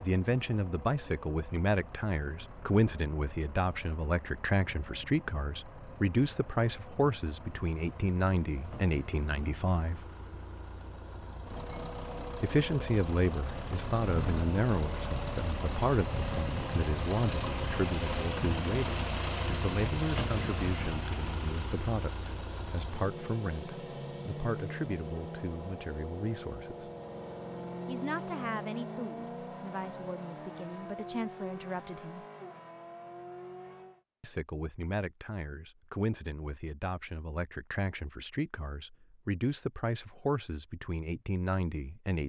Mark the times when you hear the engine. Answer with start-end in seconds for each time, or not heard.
0.0-34.0.